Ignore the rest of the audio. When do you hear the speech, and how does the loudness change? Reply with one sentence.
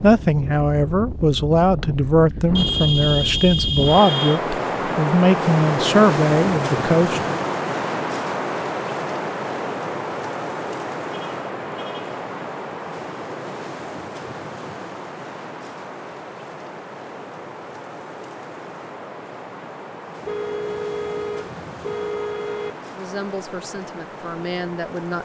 The speech can be heard from 0.0 to 7.4 s, at a steady volume; and briefly from 22.9 to 25.2 s.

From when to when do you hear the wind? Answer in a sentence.
You can hear the wind from 0.0 to 25.2 s.